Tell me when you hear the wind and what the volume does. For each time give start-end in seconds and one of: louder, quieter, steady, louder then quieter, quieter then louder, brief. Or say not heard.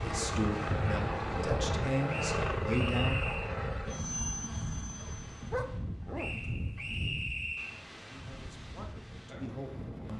0.0-10.1 quieter.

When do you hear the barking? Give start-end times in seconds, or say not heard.
5.0-7.0.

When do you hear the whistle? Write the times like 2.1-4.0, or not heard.
2.0-3.5, 6.2-7.8.